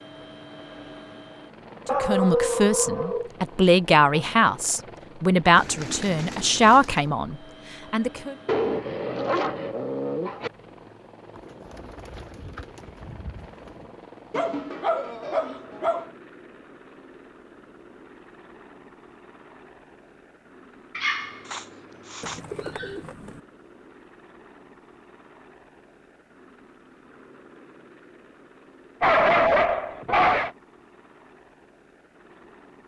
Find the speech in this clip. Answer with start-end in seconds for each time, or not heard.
1.9-8.3.